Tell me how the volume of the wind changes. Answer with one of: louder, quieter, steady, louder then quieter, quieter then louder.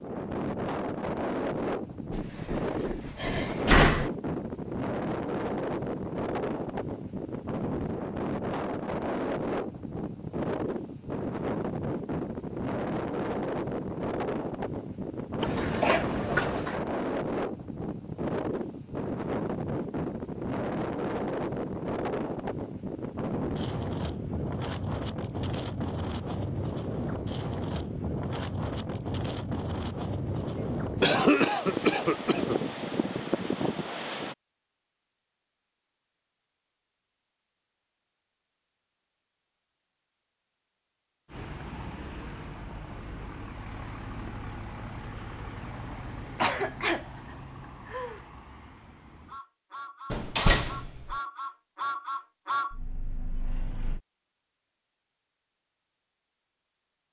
steady.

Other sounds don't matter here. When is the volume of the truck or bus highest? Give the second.
52 s.